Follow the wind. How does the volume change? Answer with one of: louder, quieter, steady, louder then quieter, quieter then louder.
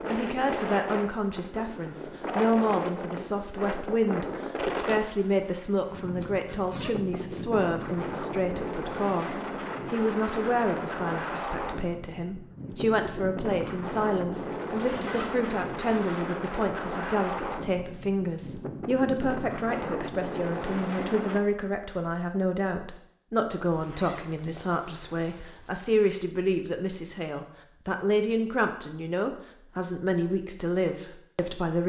steady.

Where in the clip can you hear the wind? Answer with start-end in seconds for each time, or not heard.
0.0-21.4.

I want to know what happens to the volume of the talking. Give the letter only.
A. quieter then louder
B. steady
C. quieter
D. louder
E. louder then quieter
B.